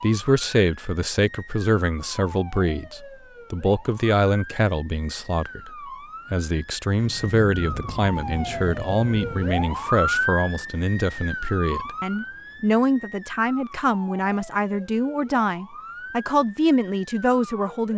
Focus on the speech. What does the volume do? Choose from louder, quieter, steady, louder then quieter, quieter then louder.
steady.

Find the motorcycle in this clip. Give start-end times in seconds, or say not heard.
not heard.